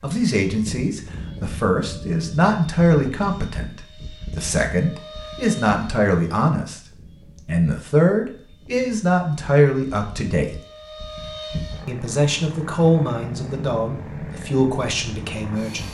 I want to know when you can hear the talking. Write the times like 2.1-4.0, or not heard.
0.0-6.8, 7.5-10.6, 11.8-15.8.